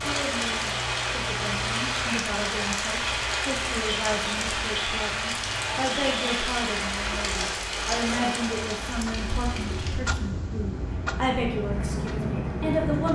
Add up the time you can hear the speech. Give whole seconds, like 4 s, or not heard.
13 s.